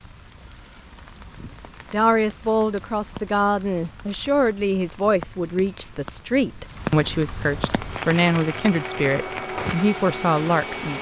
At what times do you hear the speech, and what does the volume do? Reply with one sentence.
The speech can be heard from 1.9 to 10.9 s, at a steady volume.